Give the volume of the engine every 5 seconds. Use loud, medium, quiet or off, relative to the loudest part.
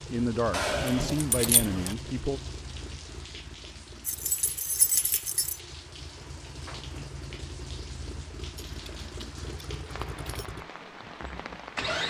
medium, medium, loud.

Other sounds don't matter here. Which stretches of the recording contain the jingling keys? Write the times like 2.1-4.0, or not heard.
0.5-1.9, 4.0-5.6, 8.6-10.5.